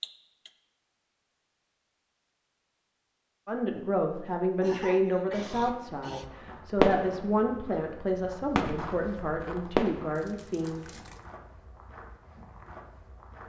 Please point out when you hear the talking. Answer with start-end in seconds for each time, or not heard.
3.5-11.0.